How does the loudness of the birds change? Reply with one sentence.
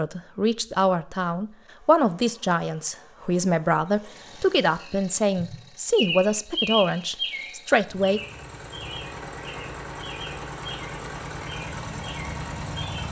The volume of the birds goes down.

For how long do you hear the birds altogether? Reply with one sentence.
The birds can be heard for 8 seconds in total.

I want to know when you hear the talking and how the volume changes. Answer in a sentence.
The talking can be heard from 0.0 to 8.2 s, at a steady volume.